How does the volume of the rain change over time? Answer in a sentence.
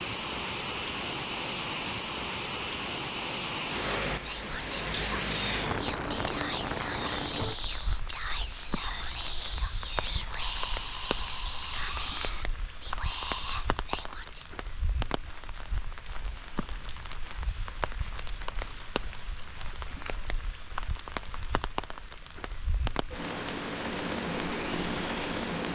The volume of the rain goes down, then up.